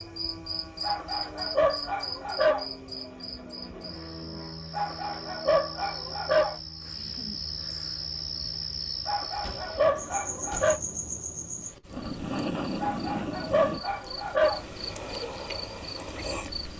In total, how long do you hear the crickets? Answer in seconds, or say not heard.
17 s.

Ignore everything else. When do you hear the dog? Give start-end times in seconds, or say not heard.
0.8-2.6, 4.7-6.5, 9.1-10.8, 12.8-14.7.